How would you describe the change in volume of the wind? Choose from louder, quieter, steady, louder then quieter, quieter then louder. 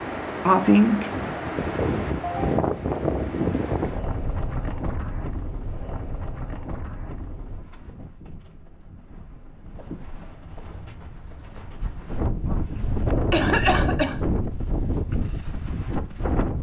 quieter then louder.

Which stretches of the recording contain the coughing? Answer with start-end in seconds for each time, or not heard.
0.5-1.1, 12.4-14.2.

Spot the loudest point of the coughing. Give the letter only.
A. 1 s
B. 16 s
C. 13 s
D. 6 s
A.